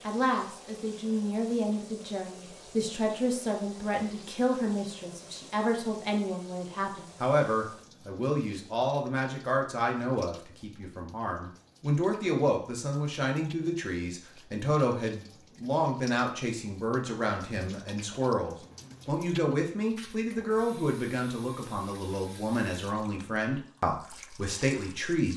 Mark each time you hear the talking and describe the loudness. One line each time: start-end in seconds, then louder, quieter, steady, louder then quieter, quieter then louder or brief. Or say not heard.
0.1-25.3 steady.